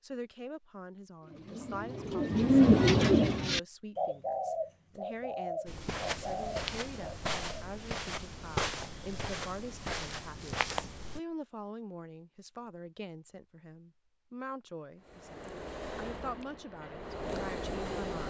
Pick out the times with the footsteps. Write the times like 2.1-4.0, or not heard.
5.7-11.2.